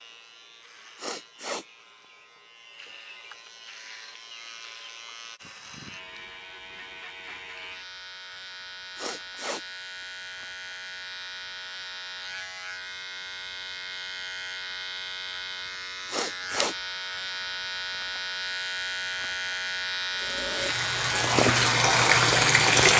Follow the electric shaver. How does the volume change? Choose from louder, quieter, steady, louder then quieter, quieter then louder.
louder.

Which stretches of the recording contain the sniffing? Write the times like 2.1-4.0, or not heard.
0.9-1.6, 8.9-9.7, 16.1-16.8.